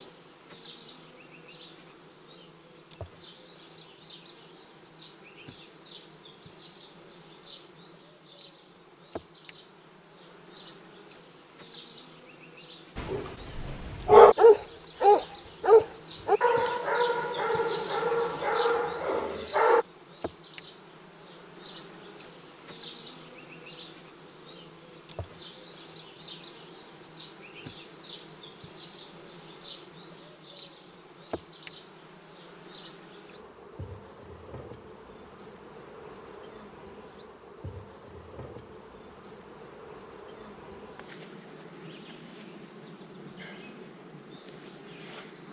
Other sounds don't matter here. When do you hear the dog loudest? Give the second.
14 s.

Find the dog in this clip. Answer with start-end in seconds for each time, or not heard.
12.9-19.9.